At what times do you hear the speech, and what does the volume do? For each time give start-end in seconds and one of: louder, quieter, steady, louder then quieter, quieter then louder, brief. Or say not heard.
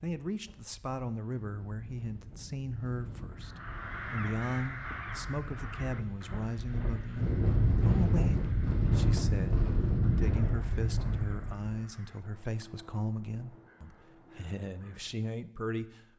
0.0-16.1 steady.